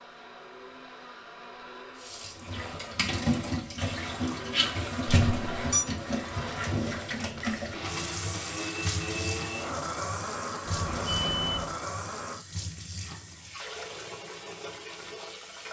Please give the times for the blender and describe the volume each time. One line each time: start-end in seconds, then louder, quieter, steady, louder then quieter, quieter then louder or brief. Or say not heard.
0.0-12.4 louder.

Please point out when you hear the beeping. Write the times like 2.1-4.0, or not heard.
5.0-5.8, 10.7-11.8.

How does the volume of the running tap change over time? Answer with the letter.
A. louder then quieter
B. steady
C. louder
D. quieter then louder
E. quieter
E.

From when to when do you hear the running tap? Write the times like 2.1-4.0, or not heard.
1.9-15.6.